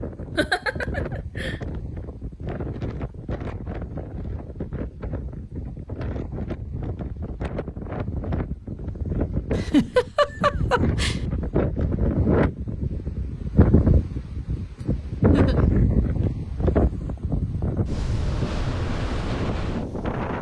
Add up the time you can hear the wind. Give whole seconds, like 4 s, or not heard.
20 s.